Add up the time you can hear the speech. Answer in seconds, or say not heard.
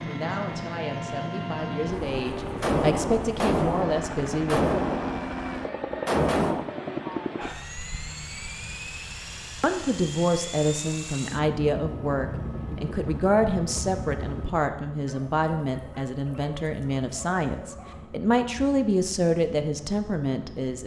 16 s.